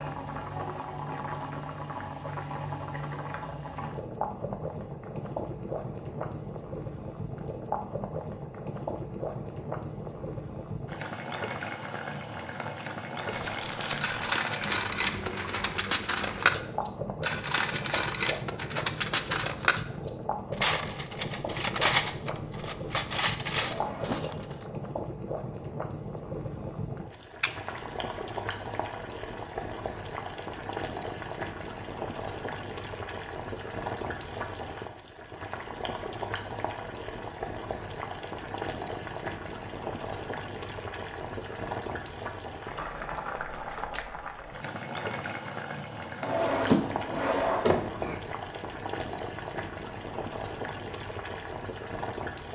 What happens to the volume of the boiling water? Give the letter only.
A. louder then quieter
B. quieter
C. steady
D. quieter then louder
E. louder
C.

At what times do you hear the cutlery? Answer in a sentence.
You can hear the cutlery from 13.2 to 24.7 s.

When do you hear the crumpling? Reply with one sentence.
You can hear the crumpling from 13.3 to 14.3 s and from 27.4 to 28.1 s.